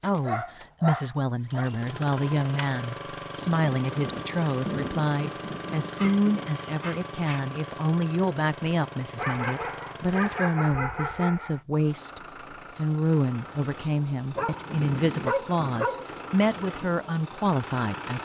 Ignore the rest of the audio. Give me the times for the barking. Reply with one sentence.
The barking can be heard from 0.2 to 1.7 s, from 6.0 to 7.4 s, from 9.2 to 11.6 s and from 14.3 to 16.1 s.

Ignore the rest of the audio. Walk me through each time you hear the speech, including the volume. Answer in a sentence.
The speech can be heard from 0.0 to 18.2 s, at a steady volume.